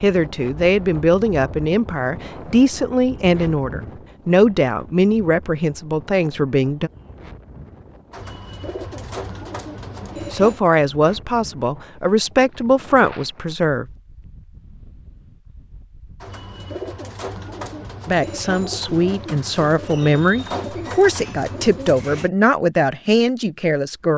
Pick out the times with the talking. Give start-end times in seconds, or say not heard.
0.0-6.9, 10.3-13.8, 18.1-24.1.